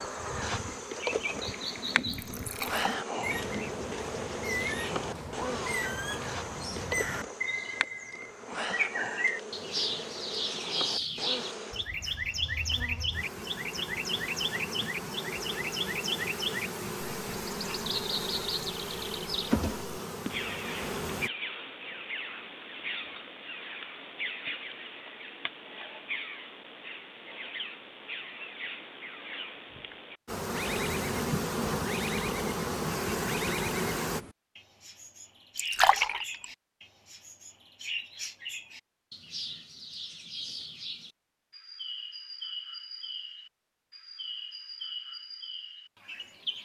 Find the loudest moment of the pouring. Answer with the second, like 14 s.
36 s.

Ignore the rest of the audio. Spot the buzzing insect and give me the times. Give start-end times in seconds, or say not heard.
0.0-21.3, 30.2-34.2.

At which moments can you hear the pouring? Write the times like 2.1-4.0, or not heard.
2.2-2.9, 35.5-36.5.